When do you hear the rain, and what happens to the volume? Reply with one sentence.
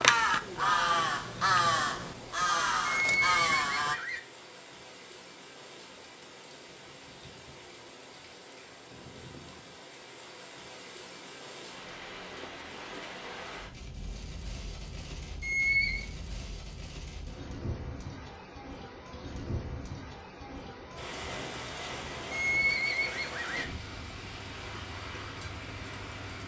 You can hear the rain from 0.2 to 26.4 s, getting louder.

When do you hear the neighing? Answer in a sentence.
You can hear the neighing from 2.9 to 4.2 s, from 15.4 to 16.1 s and from 22.3 to 23.7 s.